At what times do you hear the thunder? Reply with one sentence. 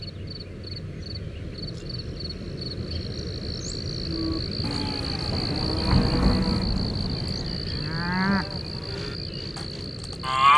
The thunder can be heard from 5.3 to 7.6 s.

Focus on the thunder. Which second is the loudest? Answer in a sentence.
The volume of the thunder peaks at 6 seconds.